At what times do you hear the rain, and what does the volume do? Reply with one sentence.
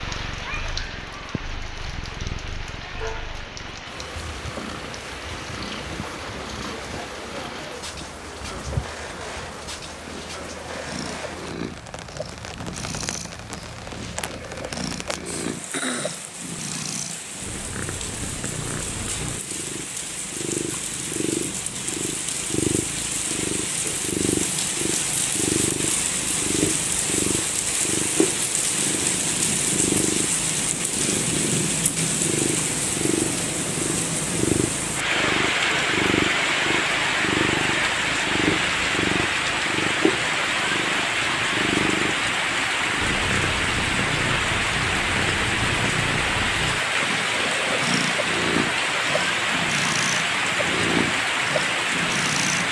You can hear the rain from 0.0 to 52.6 s, getting louder.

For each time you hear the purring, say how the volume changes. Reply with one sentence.
You can hear the purring from 0.0 to 52.6 s, getting louder.